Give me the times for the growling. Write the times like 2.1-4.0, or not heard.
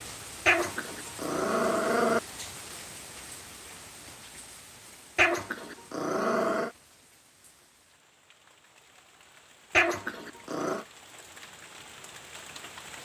0.5-2.2, 5.2-6.7, 9.7-10.8.